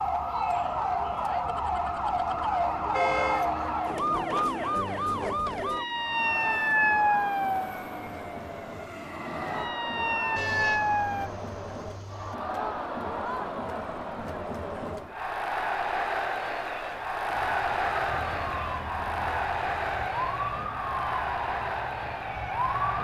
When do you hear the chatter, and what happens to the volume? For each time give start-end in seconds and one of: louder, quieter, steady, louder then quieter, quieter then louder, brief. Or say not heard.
0.1-22.9 louder.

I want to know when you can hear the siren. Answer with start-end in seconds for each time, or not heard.
0.0-11.3, 17.2-22.9.